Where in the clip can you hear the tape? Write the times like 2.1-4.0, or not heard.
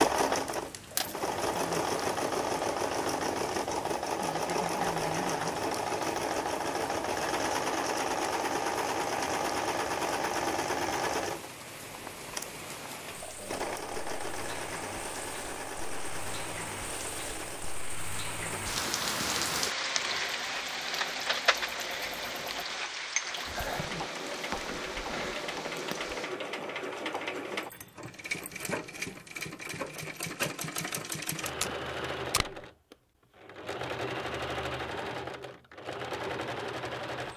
31.4-32.5.